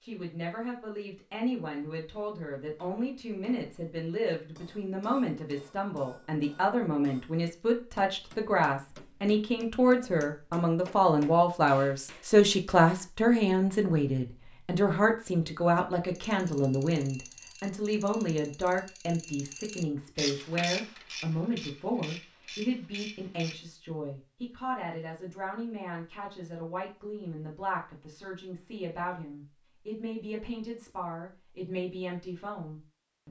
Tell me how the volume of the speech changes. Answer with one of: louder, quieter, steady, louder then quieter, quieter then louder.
louder then quieter.